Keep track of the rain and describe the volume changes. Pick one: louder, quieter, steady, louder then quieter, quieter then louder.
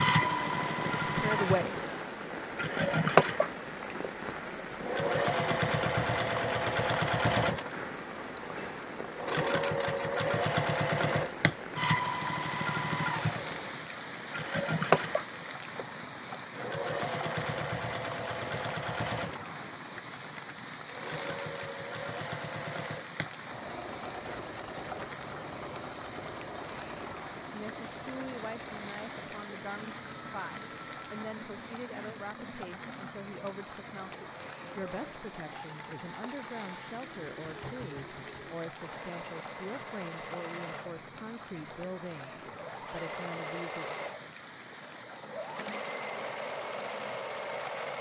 quieter.